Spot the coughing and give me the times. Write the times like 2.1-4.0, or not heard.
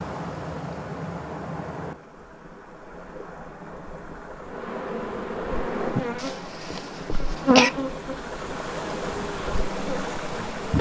6.2-7.7.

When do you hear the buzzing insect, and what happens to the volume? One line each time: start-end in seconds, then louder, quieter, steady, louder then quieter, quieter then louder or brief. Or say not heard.
4.5-10.7 louder then quieter.